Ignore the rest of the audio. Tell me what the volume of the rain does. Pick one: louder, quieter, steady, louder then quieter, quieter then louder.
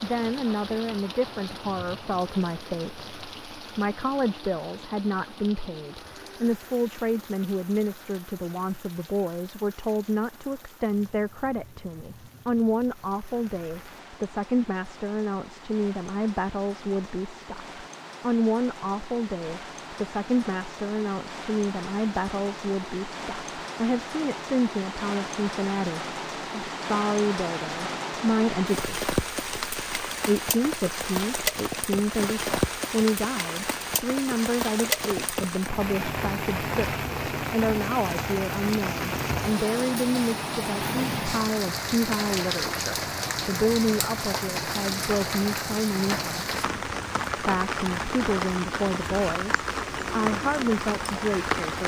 louder.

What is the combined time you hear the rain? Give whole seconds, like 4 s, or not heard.
52 s.